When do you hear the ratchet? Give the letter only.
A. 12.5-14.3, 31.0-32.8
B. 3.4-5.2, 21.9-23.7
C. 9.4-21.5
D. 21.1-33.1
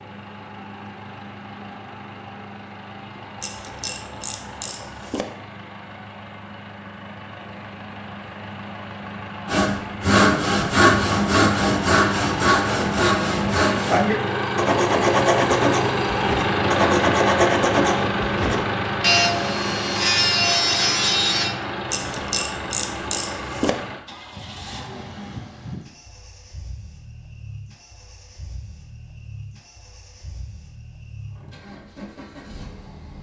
B.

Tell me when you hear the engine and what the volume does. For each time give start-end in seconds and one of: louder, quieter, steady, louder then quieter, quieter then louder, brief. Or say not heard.
0.0-33.1 louder then quieter.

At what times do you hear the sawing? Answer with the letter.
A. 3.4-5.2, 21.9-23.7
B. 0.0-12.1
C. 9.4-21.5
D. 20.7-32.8
C.